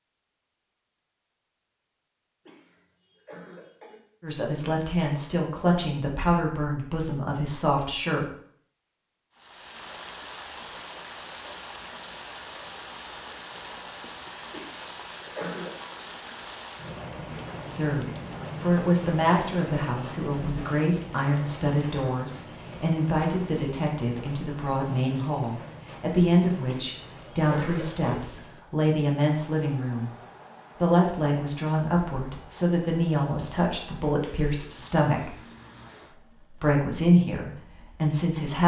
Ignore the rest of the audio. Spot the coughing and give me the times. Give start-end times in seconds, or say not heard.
2.5-4.0, 14.5-15.8, 26.6-28.2.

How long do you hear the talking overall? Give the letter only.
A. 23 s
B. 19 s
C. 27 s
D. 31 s
A.